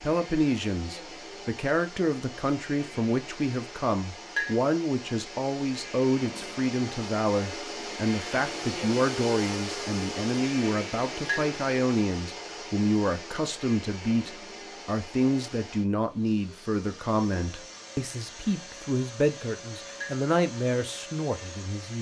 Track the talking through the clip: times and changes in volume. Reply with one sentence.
The talking can be heard from 0.0 to 21.9 s, at a steady volume.